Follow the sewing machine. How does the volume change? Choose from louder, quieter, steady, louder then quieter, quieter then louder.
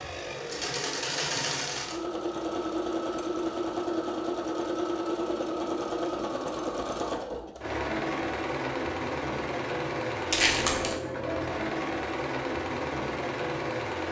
steady.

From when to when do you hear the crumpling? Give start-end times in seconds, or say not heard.
10.3-10.9.